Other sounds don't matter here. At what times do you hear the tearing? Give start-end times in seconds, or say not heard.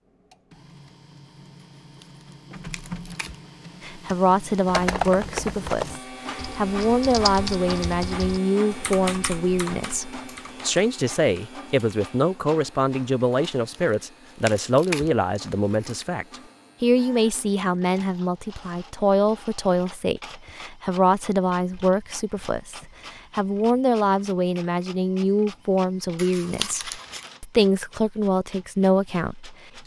1.6-3.4, 13.3-16.1, 26.1-27.3.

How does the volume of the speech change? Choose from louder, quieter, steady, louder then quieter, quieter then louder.
steady.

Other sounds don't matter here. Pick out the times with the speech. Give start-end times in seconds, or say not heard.
3.8-29.6.